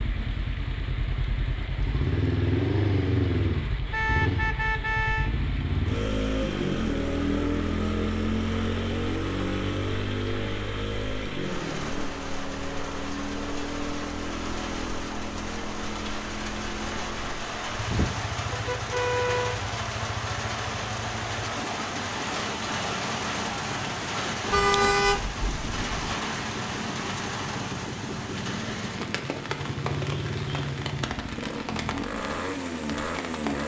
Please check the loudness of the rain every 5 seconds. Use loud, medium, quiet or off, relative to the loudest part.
medium, medium, medium, loud, loud, loud, medium.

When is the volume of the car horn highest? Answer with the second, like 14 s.
25 s.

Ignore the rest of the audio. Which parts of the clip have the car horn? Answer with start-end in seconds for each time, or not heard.
3.9-5.3, 17.9-19.6, 24.5-26.1.